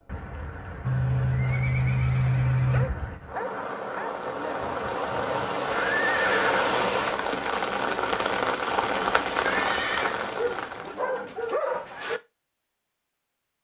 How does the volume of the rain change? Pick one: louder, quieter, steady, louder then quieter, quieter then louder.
louder.